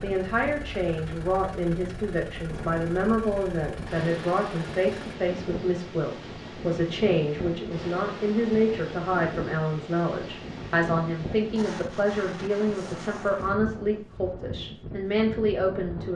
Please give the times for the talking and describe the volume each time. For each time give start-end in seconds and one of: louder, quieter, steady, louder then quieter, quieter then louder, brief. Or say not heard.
0.0-16.1 steady.